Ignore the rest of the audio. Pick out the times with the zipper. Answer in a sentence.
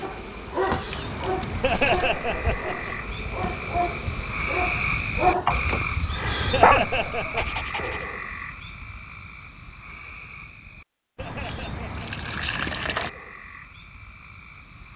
The zipper can't be heard in this clip.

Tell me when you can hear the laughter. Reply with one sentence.
The laughter can be heard from 1.6 to 3.0 s, from 6.5 to 7.5 s and from 11.2 to 11.9 s.